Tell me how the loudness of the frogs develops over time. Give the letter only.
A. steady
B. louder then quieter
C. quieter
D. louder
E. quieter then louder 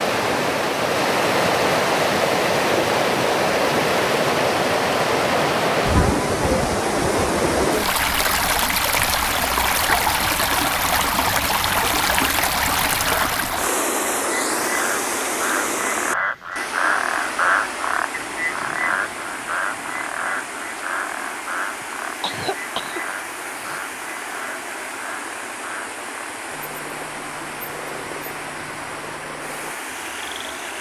C.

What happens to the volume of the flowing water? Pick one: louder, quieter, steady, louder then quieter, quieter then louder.
quieter.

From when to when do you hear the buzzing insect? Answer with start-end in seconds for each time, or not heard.
not heard.